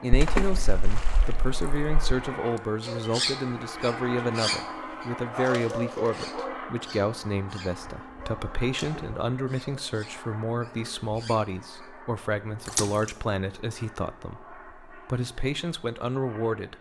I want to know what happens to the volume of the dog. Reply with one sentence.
The loudness of the dog goes down.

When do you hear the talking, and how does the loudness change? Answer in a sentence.
The talking can be heard from 0.0 to 16.7 s, at a steady volume.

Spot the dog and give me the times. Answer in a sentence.
The dog can be heard from 2.8 to 11.9 s.